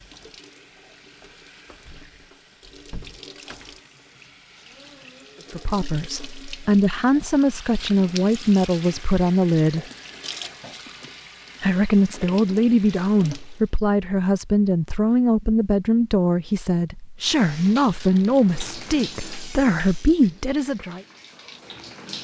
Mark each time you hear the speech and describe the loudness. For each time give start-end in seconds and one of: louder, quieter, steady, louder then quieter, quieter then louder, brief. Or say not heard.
5.5-9.8 louder
11.6-21.0 steady.